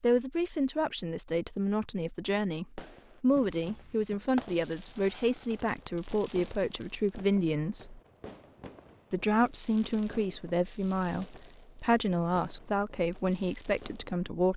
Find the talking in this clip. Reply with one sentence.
The talking can be heard from 0.0 to 8.0 s and from 9.1 to 14.5 s.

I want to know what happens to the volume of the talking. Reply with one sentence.
The loudness of the talking stays about the same.